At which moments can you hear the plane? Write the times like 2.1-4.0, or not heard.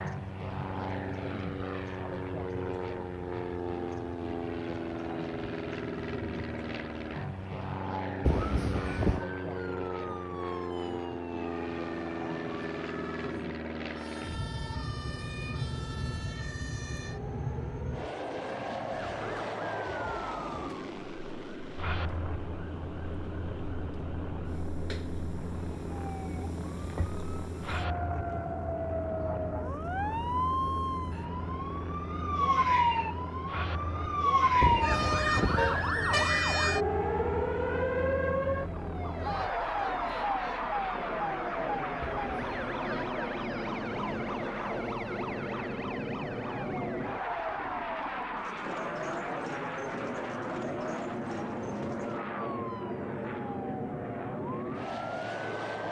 0.0-55.8.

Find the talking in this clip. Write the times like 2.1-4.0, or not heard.
not heard.